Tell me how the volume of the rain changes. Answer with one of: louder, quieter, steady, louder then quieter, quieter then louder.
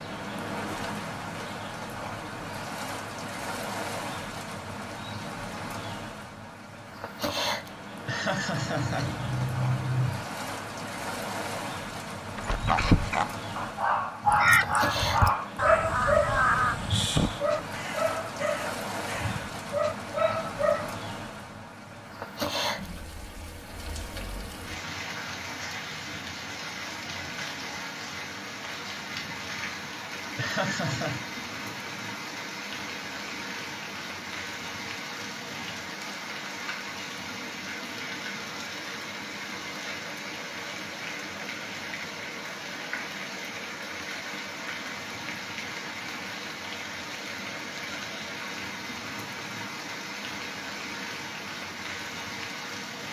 steady.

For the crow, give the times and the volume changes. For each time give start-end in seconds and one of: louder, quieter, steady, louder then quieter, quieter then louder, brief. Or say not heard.
14.2-19.4 louder then quieter.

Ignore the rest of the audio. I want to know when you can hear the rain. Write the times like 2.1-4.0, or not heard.
0.0-53.0.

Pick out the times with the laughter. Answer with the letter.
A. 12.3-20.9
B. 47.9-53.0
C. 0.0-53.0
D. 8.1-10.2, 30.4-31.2
D.